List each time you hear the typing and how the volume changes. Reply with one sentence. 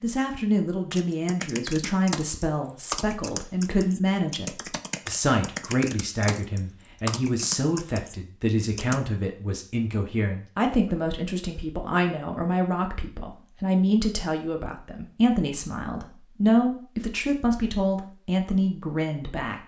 The typing can be heard from 0.9 to 9.0 s, at a steady volume.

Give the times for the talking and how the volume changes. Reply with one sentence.
The talking can be heard from 0.0 to 19.6 s, at a steady volume.